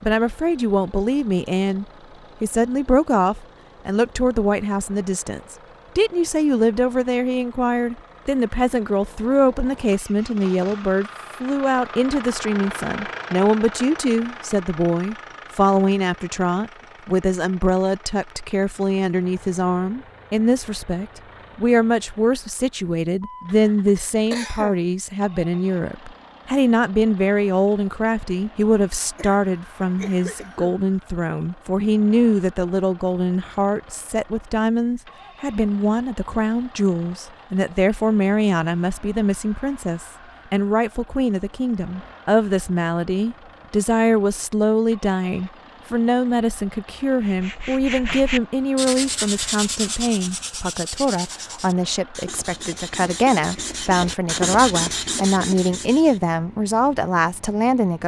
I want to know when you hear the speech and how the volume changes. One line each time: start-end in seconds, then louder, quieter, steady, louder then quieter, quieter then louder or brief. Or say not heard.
0.0-58.0 steady.